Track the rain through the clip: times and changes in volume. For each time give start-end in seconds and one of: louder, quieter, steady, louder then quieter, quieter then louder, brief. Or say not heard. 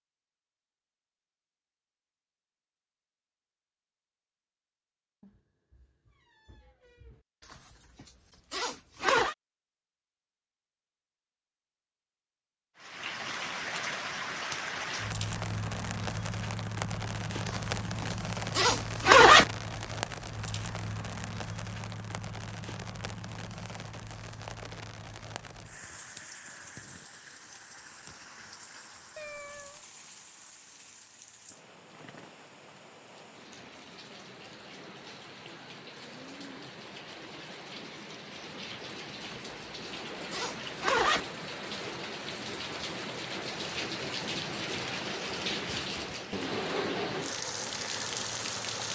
12.8-48.9 quieter then louder.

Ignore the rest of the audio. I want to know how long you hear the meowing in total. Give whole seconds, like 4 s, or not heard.
3 s.